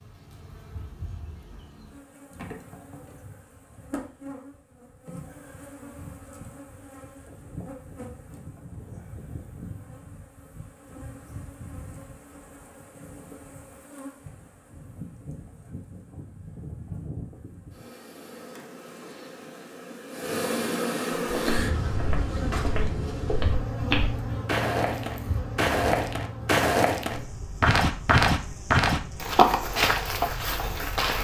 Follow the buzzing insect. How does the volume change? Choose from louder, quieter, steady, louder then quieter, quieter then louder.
louder then quieter.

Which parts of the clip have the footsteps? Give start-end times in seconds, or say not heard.
21.2-31.1.